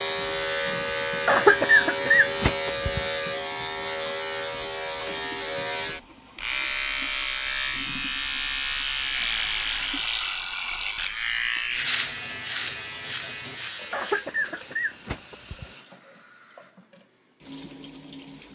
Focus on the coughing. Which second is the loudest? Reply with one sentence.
The loudest moment of the coughing is at 2 seconds.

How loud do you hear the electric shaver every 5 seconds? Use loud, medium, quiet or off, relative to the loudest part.
loud, loud, loud, off.